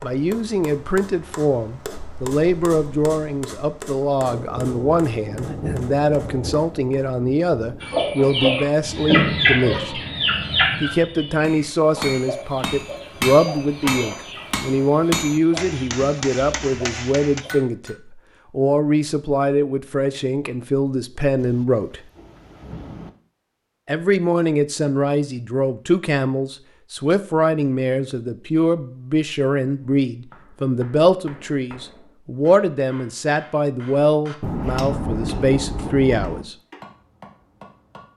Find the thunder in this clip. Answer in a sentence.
You can hear the thunder from 4.2 to 7.8 s, from 21.4 to 23.1 s and from 34.4 to 36.5 s.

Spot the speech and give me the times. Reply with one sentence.
You can hear the speech from 0.0 to 10.0 s, from 10.8 to 22.0 s and from 23.9 to 36.5 s.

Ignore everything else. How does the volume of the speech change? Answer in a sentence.
The volume of the speech stays about the same.